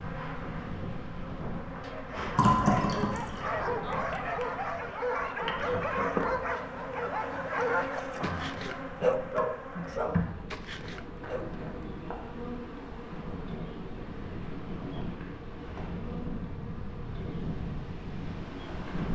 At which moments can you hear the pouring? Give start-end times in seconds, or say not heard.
2.4-3.5.